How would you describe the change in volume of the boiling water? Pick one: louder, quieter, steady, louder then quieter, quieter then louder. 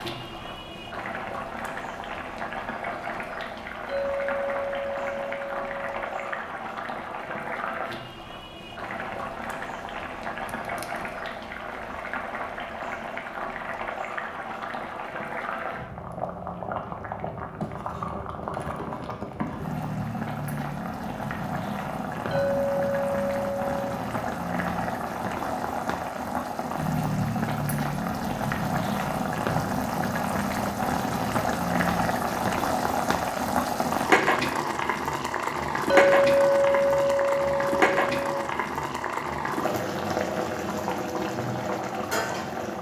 louder.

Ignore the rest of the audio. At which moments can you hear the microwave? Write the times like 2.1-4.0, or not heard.
not heard.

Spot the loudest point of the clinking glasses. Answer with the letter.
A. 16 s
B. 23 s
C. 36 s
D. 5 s
C.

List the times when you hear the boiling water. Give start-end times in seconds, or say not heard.
0.0-42.7.